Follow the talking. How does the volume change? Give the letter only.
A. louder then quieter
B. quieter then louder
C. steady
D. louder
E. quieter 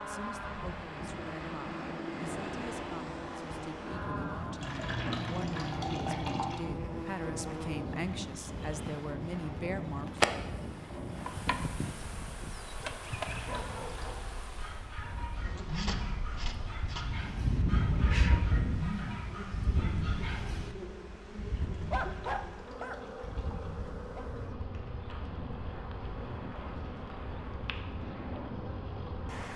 D.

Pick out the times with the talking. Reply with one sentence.
The talking can be heard from 0.0 to 10.2 s.